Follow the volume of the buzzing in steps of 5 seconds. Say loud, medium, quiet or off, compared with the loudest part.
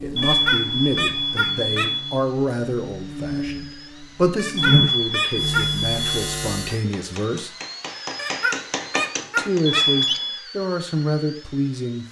loud, loud, off.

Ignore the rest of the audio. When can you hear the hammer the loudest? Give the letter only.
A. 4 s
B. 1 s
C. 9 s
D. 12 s
C.